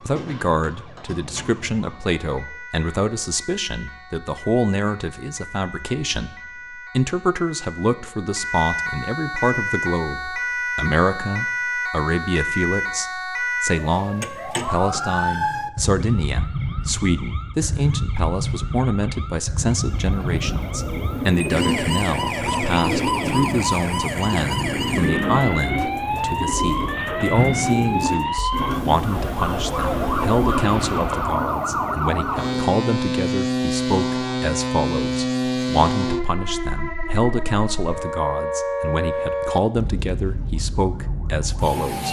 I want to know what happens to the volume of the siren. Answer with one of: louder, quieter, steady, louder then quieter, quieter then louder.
louder.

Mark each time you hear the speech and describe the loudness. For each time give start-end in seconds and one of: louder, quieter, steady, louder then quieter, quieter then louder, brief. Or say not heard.
0.1-42.0 steady.